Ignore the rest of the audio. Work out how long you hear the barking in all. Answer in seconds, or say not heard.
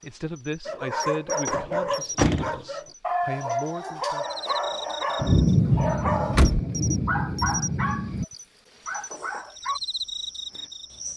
9 s.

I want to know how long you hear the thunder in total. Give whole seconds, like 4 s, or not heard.
3 s.